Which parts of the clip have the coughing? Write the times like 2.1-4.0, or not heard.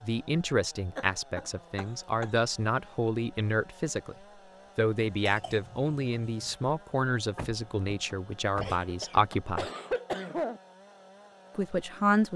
0.9-2.4, 5.1-6.5, 8.6-10.6.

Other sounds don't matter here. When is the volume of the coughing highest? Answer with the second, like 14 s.
10 s.